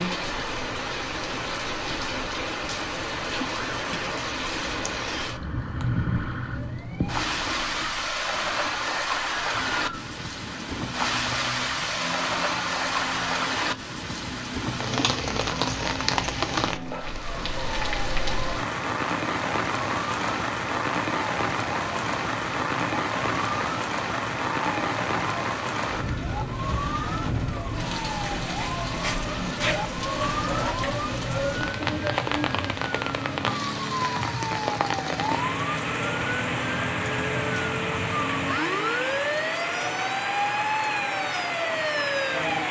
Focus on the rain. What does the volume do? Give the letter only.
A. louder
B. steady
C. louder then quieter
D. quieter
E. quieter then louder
B.